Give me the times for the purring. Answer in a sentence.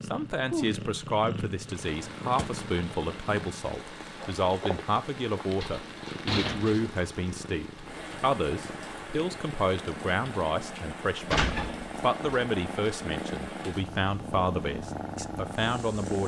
The purring can be heard from 0.0 to 16.2 s.